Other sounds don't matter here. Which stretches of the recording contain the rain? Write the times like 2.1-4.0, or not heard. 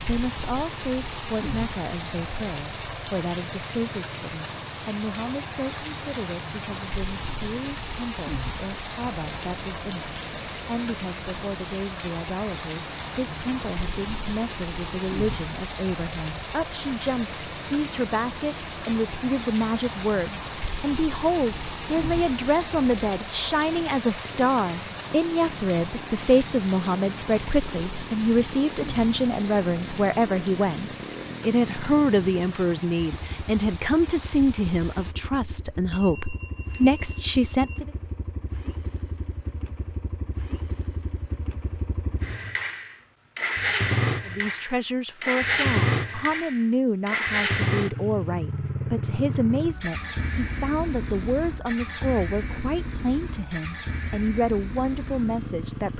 0.0-35.1.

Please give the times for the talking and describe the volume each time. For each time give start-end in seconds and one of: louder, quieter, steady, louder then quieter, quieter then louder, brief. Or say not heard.
0.0-37.9 louder
44.2-55.9 steady.